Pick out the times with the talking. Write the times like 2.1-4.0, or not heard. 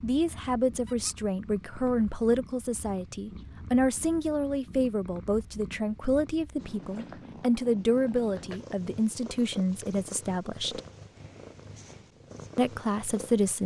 0.0-10.8, 12.6-13.6.